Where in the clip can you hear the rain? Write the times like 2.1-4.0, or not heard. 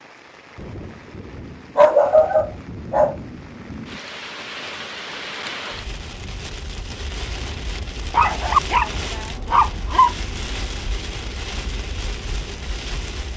0.0-13.3.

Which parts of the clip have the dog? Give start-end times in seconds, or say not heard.
1.8-3.1, 8.1-10.2.